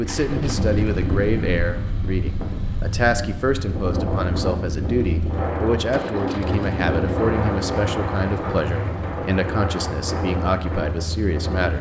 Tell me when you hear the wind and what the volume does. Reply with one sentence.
You can hear the wind from 0.0 to 11.7 s, at a steady volume.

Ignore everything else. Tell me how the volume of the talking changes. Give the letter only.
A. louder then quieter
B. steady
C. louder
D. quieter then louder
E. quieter
B.